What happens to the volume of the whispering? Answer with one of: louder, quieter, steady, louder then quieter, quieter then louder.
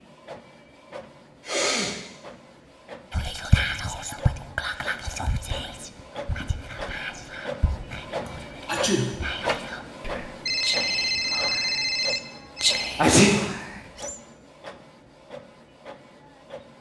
quieter then louder.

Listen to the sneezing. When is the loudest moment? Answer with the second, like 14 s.
13 s.